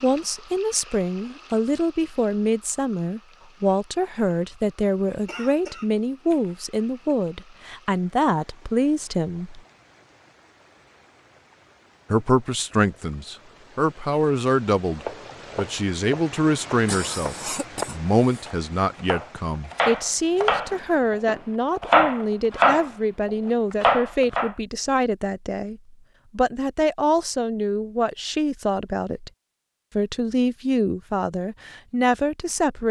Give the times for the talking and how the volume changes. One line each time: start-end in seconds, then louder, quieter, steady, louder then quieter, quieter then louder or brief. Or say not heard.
0.0-9.6 steady
12.1-29.3 steady
29.9-32.8 brief.